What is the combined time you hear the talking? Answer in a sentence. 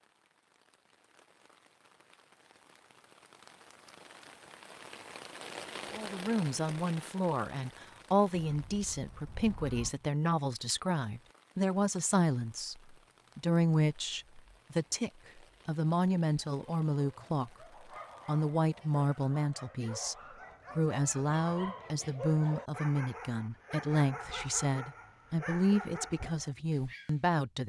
You can hear the talking for 20 seconds altogether.